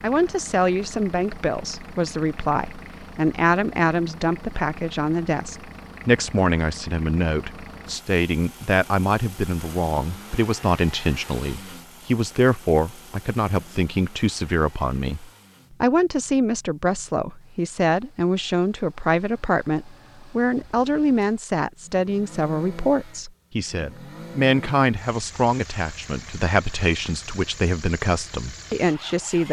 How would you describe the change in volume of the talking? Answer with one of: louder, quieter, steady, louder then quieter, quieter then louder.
steady.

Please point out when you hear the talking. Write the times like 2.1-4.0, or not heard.
0.0-29.4.